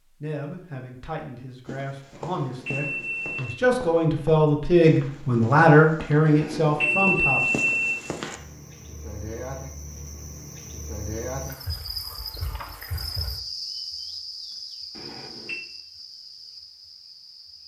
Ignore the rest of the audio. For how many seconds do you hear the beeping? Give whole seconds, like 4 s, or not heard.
4 s.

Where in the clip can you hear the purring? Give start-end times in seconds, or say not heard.
not heard.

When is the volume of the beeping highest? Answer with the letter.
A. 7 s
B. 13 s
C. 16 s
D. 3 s
A.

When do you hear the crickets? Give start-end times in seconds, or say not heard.
8.3-17.6.